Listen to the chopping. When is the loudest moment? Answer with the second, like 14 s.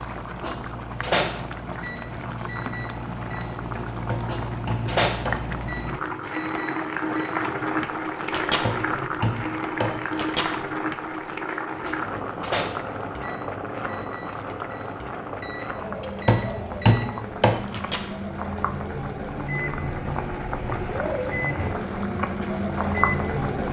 17 s.